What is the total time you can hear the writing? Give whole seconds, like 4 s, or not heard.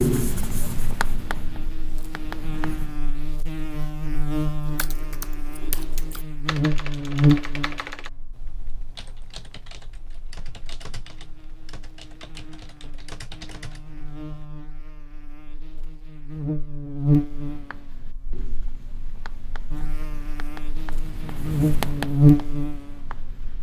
9 s.